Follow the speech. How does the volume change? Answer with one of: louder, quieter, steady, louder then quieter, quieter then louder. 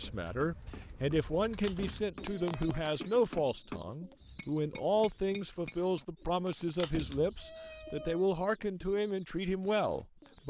steady.